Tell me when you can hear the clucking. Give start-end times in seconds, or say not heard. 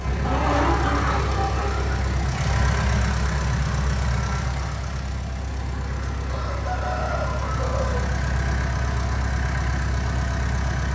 0.2-2.1, 6.2-8.1.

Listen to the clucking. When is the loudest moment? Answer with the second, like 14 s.
1 s.